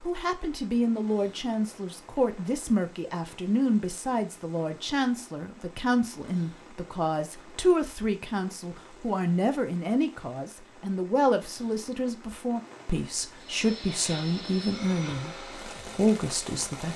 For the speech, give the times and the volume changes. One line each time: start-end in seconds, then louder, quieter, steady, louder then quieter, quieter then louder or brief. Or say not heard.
0.0-16.9 steady.